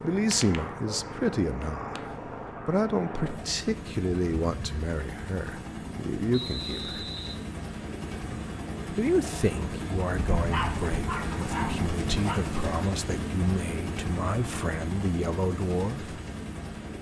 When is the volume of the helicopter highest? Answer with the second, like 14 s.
12 s.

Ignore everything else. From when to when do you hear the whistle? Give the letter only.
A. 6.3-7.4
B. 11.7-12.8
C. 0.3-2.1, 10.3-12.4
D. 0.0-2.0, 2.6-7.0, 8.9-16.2
A.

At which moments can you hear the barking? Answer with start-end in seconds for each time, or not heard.
0.3-2.1, 10.3-12.4.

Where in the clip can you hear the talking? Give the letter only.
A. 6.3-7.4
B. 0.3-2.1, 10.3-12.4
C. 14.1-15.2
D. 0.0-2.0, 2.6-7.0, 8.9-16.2
D.